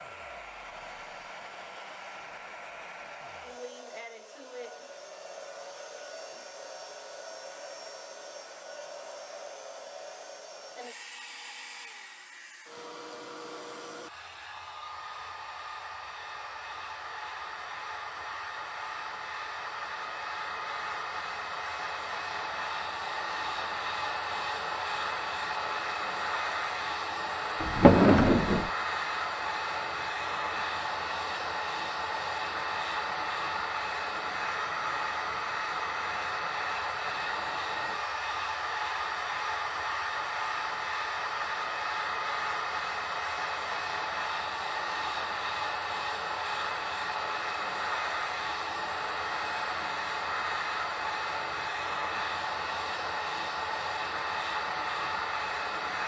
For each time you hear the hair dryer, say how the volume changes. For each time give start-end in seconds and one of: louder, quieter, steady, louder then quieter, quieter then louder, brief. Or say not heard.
0.0-56.0 louder.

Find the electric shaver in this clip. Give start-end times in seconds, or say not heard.
not heard.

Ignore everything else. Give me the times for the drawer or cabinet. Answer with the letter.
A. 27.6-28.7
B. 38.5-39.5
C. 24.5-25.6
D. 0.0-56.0
A.